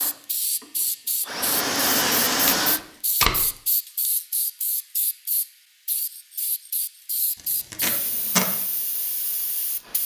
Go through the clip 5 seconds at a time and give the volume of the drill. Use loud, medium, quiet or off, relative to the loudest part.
loud, off.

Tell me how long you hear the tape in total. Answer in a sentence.
The tape can be heard for 2 seconds in total.